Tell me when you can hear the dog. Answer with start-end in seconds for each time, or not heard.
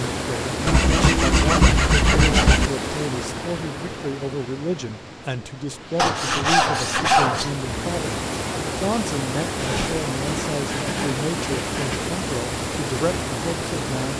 not heard.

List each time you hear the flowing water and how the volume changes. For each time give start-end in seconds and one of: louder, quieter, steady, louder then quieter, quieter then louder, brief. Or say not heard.
0.0-14.1 quieter then louder.